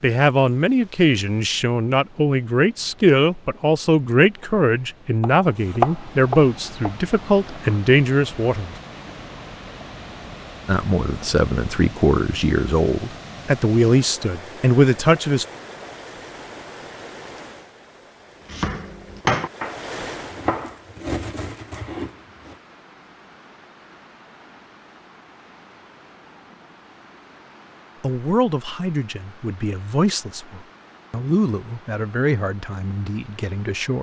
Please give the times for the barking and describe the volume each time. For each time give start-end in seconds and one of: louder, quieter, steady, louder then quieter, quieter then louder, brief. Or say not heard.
not heard.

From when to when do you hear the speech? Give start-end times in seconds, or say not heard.
0.0-8.7, 10.7-15.4, 28.0-33.9.